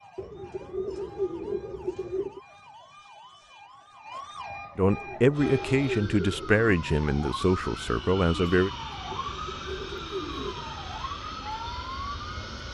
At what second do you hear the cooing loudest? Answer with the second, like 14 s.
1 s.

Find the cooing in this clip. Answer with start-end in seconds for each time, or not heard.
0.1-2.4, 4.8-6.5, 9.1-10.7.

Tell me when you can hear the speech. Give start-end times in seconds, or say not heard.
4.8-8.7.